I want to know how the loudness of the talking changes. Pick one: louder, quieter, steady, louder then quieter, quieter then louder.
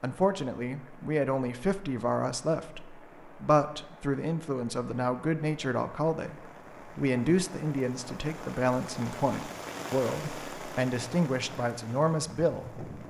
steady.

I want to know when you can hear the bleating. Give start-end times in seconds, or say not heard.
not heard.